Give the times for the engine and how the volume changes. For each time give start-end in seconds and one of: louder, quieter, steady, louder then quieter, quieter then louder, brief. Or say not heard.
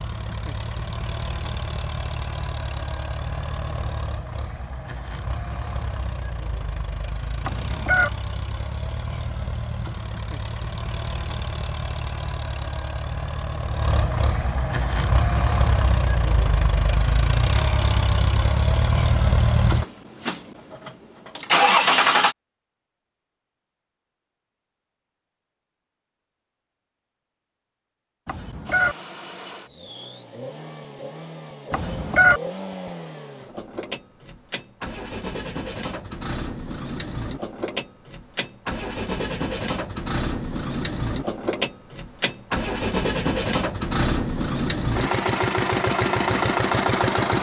0.0-22.4 louder
28.6-47.3 louder.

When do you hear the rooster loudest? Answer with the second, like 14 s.
32 s.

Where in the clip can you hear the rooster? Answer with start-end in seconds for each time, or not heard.
7.4-8.1, 28.2-28.9, 31.7-32.4.